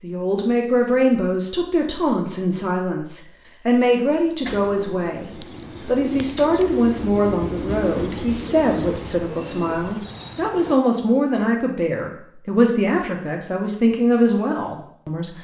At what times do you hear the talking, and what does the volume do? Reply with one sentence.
You can hear the talking from 0.0 to 15.3 s, at a steady volume.